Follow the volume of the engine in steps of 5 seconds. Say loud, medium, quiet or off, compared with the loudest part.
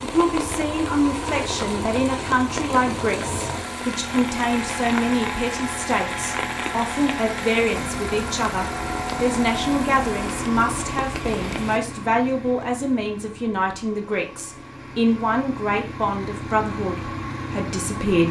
loud, loud, medium, loud.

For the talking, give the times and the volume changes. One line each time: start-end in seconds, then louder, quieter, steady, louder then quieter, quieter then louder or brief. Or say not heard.
0.0-18.2 steady.